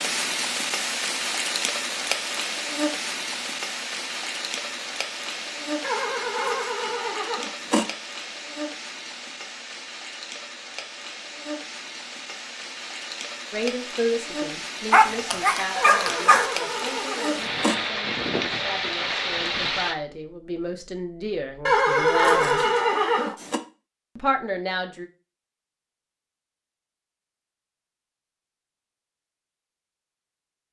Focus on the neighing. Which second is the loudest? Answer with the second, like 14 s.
22 s.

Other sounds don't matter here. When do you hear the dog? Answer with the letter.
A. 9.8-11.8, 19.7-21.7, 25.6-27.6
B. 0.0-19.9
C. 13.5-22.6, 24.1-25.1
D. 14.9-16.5
D.